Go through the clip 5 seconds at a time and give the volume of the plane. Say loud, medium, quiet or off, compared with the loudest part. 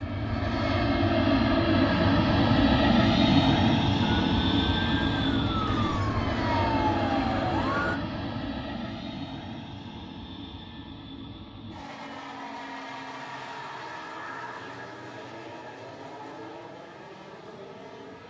loud, medium, quiet, quiet.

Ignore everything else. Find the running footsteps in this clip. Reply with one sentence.
You can't hear the running footsteps here.